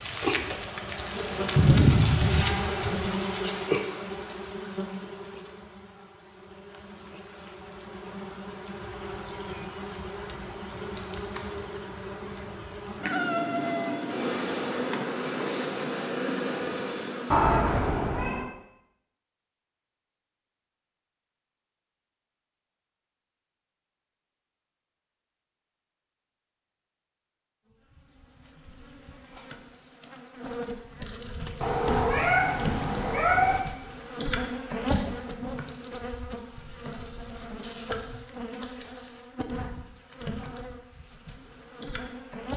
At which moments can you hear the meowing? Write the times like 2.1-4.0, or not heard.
1.6-3.1, 17.3-18.5, 31.6-33.6.